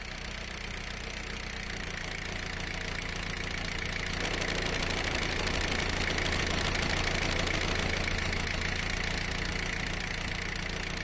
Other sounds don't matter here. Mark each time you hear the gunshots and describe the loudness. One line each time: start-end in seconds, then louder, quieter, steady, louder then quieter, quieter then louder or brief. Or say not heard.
4.2-8.2 steady.